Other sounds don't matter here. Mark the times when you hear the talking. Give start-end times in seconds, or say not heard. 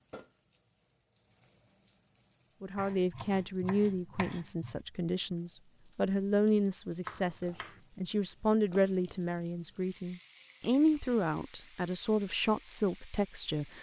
2.6-13.7.